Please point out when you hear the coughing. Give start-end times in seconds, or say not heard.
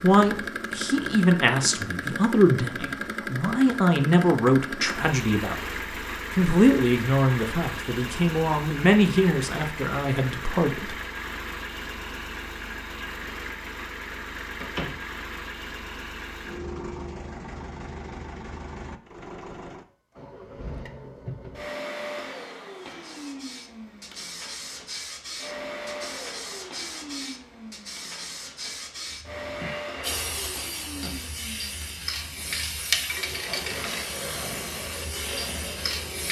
not heard.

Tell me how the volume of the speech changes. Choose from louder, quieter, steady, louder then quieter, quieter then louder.
steady.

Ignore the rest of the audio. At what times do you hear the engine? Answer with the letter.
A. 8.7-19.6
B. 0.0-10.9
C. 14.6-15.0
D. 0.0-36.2
D.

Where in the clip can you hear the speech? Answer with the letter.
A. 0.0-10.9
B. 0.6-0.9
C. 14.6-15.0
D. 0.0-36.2
A.